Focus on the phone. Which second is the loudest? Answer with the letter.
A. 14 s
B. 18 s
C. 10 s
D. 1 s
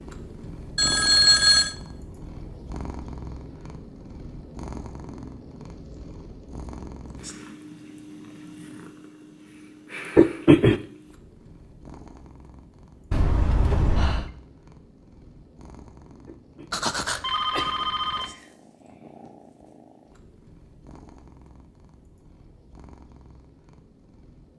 D.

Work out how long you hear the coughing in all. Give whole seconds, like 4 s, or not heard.
2 s.